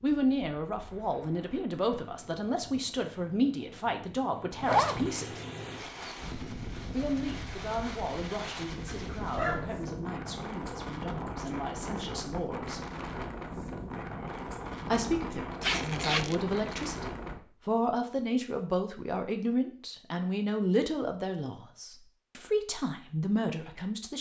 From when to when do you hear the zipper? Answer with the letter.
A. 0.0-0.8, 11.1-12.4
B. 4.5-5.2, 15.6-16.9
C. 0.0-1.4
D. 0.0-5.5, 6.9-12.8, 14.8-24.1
B.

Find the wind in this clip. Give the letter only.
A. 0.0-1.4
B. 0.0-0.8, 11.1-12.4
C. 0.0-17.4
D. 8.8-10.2
C.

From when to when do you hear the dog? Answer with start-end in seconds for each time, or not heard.
8.8-10.2.